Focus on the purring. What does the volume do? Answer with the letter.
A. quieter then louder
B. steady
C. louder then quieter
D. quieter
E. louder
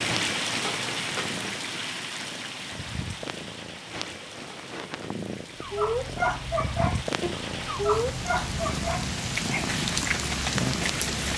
E.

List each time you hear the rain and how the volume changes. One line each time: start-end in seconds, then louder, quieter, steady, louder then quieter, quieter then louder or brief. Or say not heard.
0.0-11.3 quieter then louder.